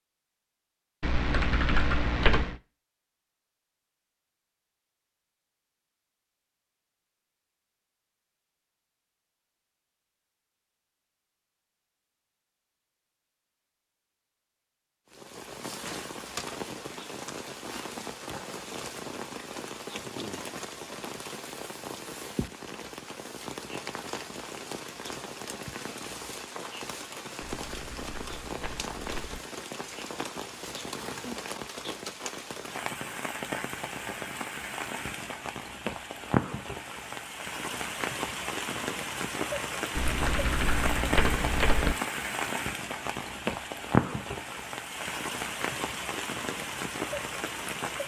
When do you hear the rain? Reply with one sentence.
The rain can be heard from 15.1 to 48.0 s.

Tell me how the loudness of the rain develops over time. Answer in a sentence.
The volume of the rain goes up.